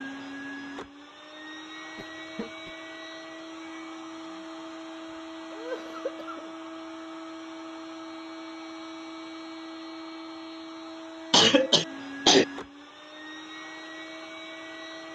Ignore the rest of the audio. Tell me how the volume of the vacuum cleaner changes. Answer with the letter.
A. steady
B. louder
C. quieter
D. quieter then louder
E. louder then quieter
A.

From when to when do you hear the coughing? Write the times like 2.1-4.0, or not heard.
1.9-2.7, 5.5-6.5, 11.3-12.4.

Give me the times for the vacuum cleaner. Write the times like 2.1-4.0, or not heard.
0.0-15.1.